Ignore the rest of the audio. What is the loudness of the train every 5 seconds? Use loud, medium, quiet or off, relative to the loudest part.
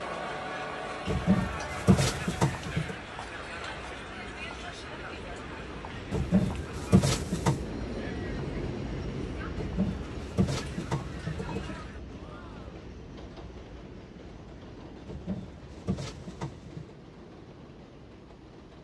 medium, loud, medium, medium.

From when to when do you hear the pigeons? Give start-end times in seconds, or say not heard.
1.1-3.0, 6.1-7.6, 9.6-11.8, 15.1-16.9.